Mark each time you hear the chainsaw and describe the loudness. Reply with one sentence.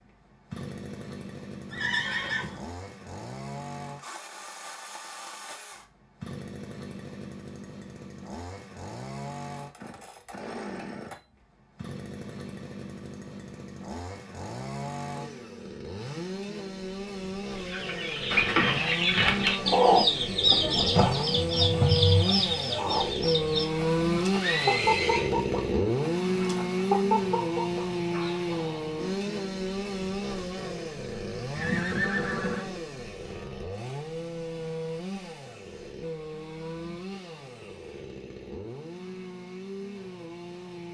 You can hear the chainsaw from 0.0 to 40.8 s, getting louder then quieter.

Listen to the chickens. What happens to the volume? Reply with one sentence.
The volume of the chickens goes down.